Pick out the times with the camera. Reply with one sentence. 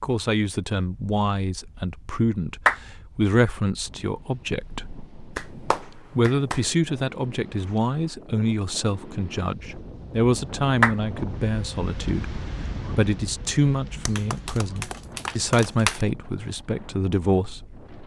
You can't hear the camera here.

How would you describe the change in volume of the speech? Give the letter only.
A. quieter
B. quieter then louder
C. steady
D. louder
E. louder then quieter
C.